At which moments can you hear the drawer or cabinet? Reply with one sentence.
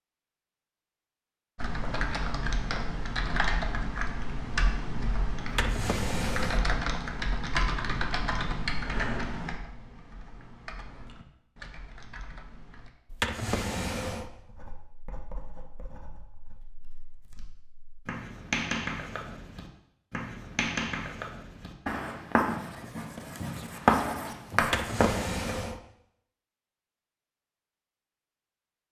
The drawer or cabinet can be heard from 5.5 to 6.7 s, from 13.1 to 14.3 s and from 24.6 to 25.8 s.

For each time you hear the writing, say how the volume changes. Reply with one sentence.
You can hear the writing from 14.2 to 25.4 s, getting louder.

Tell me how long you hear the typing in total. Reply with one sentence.
The typing can be heard for 11 seconds in total.